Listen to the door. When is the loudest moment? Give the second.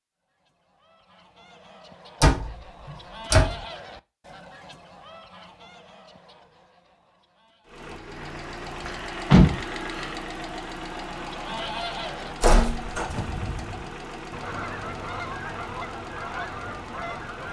9 s.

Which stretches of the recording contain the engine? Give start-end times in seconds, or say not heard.
7.7-17.4.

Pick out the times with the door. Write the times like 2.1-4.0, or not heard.
2.2-3.6, 8.8-10.1, 12.4-13.4.